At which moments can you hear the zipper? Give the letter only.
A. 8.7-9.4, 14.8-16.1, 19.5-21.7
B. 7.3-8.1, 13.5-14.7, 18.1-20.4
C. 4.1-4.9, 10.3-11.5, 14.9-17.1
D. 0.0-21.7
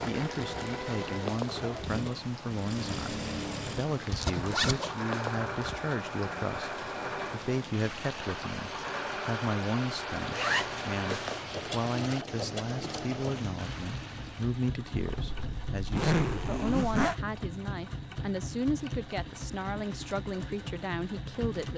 C.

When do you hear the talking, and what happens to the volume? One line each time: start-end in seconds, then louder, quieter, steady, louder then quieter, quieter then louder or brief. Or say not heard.
0.0-21.7 steady.